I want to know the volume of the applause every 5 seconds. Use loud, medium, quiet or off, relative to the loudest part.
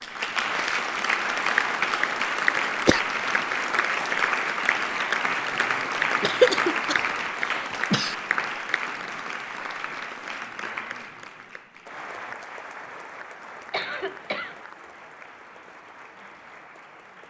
loud, loud, quiet, quiet.